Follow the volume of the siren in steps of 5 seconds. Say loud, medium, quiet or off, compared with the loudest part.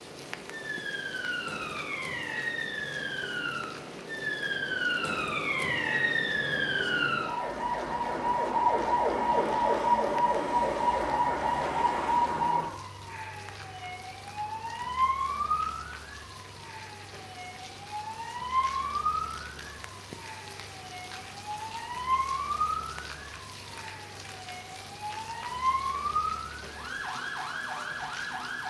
medium, loud, loud, medium, medium, medium.